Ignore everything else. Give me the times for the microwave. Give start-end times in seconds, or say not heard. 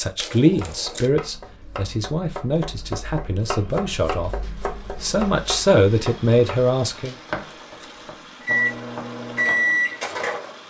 8.4-10.6.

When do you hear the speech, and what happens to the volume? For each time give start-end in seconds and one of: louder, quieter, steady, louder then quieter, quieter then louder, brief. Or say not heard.
0.0-7.2 quieter then louder.